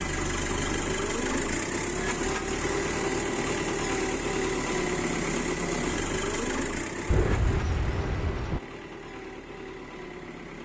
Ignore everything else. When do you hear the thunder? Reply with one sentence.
The thunder can be heard from 7.0 to 8.6 s.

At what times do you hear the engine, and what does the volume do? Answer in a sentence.
You can hear the engine from 0.0 to 10.6 s, getting quieter.